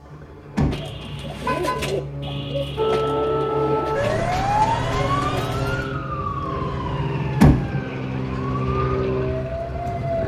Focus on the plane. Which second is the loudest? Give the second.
9 s.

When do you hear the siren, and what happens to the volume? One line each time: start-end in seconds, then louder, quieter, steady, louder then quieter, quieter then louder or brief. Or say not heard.
2.8-10.2 quieter then louder.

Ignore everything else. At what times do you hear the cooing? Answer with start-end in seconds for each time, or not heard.
0.7-6.0.